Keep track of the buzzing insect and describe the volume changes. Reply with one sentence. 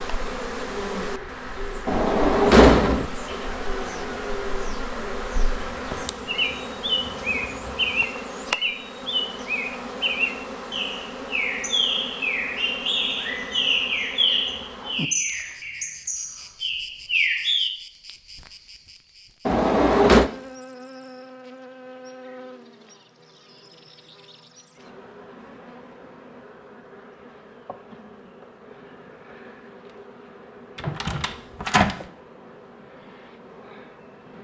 The loudness of the buzzing insect goes down.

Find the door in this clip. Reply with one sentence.
The door can be heard from 1.9 to 3.0 s, from 19.4 to 20.3 s and from 30.8 to 31.9 s.